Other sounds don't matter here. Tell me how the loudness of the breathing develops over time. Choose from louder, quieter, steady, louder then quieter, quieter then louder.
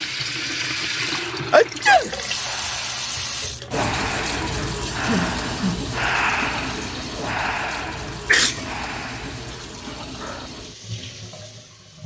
louder then quieter.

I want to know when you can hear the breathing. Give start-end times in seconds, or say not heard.
1.1-10.5.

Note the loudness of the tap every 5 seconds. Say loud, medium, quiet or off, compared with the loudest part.
loud, loud, medium.